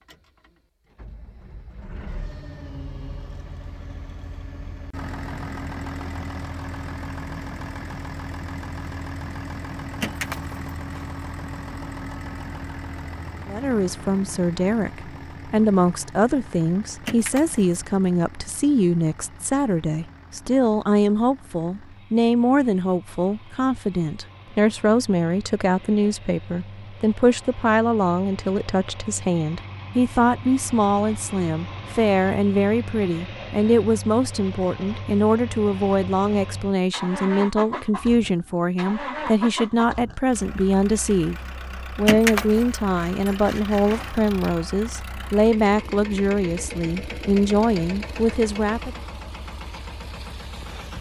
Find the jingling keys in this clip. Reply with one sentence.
You can hear the jingling keys from 10.0 to 11.1 s, from 17.1 to 17.6 s and from 42.0 to 44.2 s.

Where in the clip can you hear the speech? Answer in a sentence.
The speech can be heard from 13.4 to 41.4 s and from 42.0 to 49.0 s.